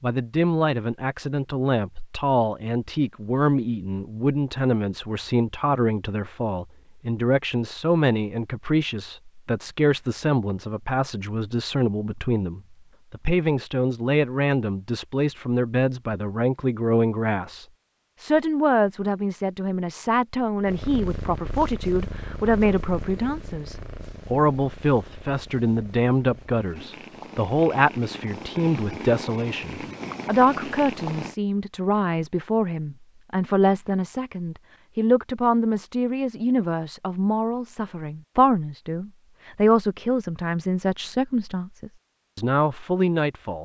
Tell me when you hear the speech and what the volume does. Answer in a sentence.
The speech can be heard from 0.0 to 43.6 s, at a steady volume.